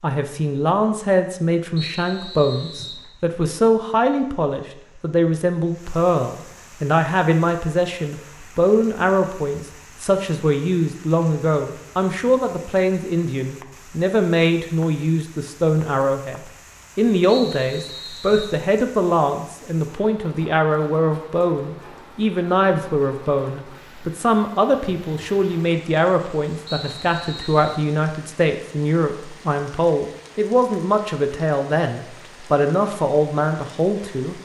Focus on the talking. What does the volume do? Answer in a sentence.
The volume of the talking stays about the same.